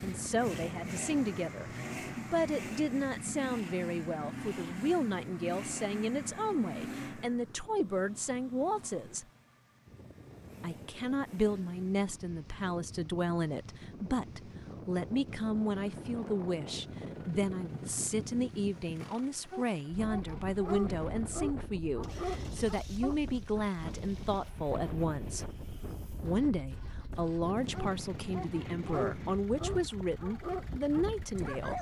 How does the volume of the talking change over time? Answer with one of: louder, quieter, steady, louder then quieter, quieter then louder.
steady.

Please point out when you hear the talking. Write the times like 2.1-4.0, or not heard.
0.0-9.2, 10.6-25.4, 26.2-31.7.